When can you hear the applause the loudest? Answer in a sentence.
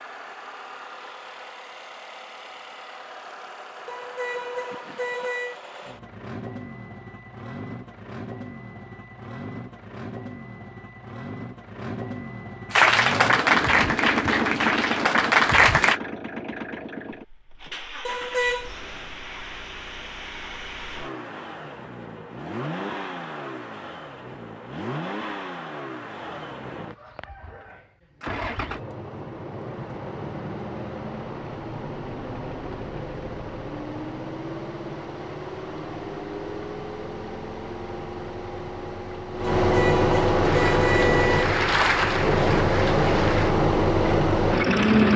The volume of the applause peaks at 13 seconds.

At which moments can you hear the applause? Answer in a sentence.
You can hear the applause from 12.7 to 16.0 s and from 40.4 to 43.5 s.